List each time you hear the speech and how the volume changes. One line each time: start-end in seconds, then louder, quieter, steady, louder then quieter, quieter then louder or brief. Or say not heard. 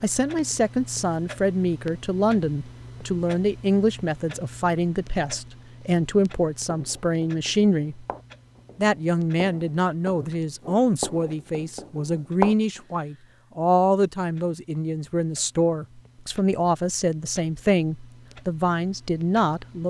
0.0-8.1 steady
8.8-19.8 steady.